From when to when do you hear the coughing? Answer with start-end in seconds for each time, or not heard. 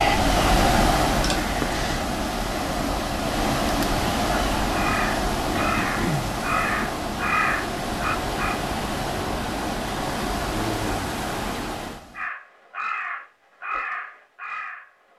5.5-6.8.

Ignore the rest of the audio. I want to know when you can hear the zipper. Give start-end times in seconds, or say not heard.
not heard.